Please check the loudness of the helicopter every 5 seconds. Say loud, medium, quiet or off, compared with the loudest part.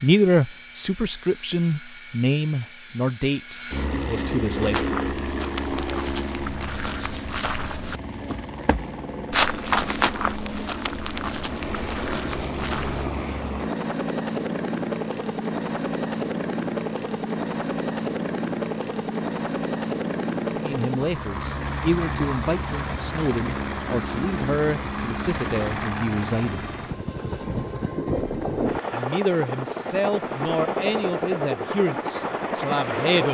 medium, medium, loud, loud, loud, loud, loud.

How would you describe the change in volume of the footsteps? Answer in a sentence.
The loudness of the footsteps goes up, then down.